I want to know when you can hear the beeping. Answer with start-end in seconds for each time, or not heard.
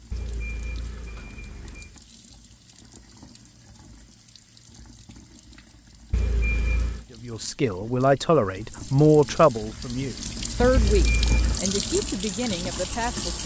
0.1-1.9, 6.1-7.0, 10.8-11.6.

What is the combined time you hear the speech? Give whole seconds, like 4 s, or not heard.
6 s.